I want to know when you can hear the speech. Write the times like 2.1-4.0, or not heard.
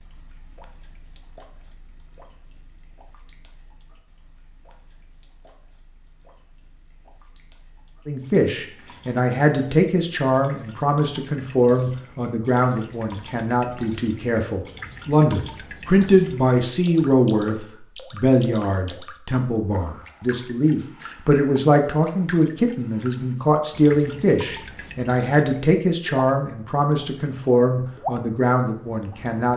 8.1-29.5.